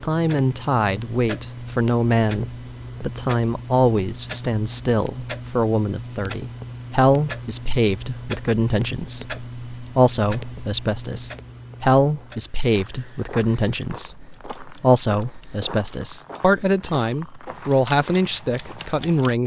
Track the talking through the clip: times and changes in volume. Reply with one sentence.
You can hear the talking from 0.0 to 19.4 s, at a steady volume.